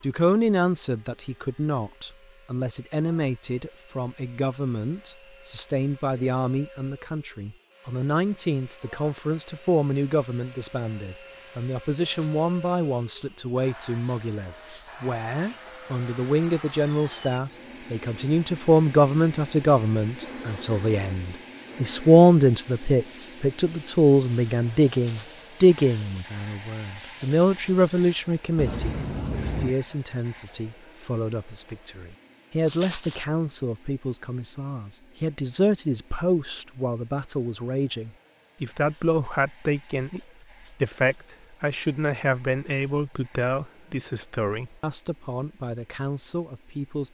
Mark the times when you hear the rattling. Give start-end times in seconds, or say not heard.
12.0-12.6, 24.9-25.5, 32.6-33.2.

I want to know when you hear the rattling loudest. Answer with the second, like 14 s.
33 s.